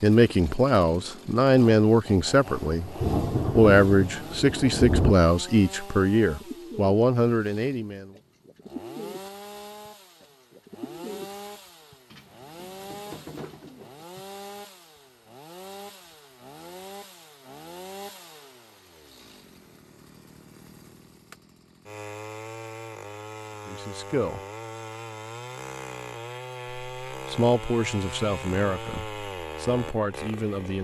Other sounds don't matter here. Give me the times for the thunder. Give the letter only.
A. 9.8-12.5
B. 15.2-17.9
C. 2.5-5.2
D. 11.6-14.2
C.